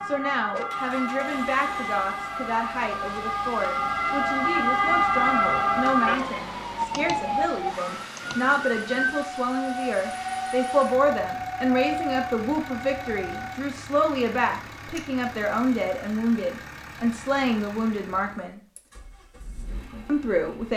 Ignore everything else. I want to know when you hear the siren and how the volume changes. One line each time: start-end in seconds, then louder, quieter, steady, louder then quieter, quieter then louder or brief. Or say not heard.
0.0-13.7 louder then quieter.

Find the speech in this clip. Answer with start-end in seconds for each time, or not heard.
0.0-18.6, 20.1-20.7.